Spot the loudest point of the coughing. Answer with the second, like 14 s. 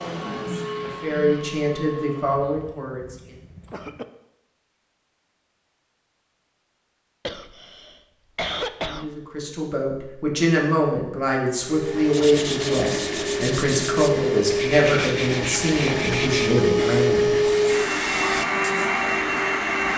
9 s.